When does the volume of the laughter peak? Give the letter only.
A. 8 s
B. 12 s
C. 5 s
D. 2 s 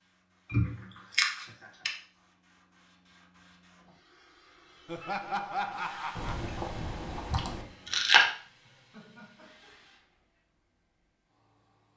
C.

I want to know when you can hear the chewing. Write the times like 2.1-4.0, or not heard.
0.5-1.9, 6.2-8.2.